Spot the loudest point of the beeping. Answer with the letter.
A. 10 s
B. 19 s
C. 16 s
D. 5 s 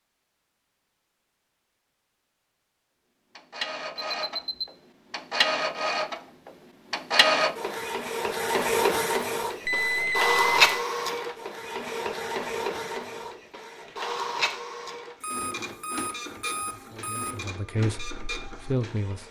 A.